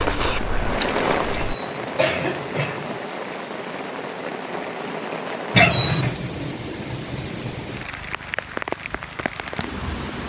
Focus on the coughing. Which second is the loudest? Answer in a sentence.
The loudest moment of the coughing is at 6 seconds.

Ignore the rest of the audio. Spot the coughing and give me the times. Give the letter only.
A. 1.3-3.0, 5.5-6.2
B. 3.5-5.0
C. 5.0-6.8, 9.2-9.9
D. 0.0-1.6
A.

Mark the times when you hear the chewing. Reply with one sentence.
You can hear the chewing from 0.0 to 1.6 s.